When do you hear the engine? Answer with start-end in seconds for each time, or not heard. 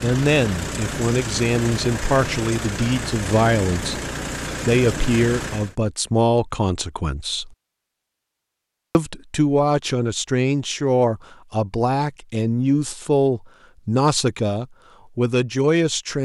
0.0-5.8.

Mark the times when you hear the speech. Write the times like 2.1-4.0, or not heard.
0.0-4.0, 4.6-7.5, 8.9-16.1.